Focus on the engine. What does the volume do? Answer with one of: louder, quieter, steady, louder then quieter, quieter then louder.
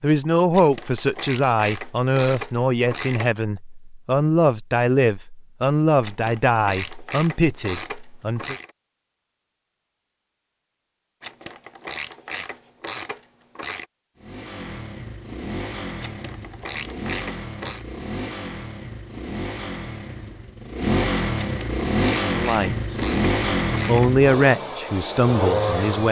louder.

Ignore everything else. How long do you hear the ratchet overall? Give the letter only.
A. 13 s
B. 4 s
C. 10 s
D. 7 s
A.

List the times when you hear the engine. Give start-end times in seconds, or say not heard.
14.2-26.0.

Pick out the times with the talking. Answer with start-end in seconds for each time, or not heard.
0.0-8.6, 22.3-23.0, 23.9-26.0.